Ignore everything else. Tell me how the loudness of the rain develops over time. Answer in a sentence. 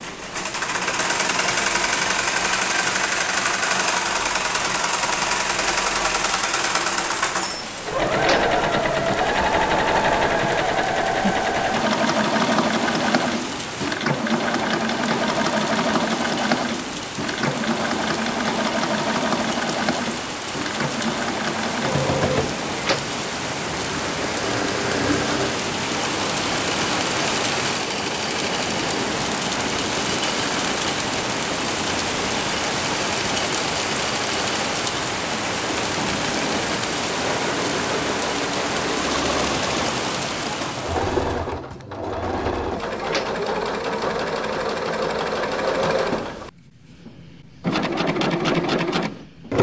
The volume of the rain goes up.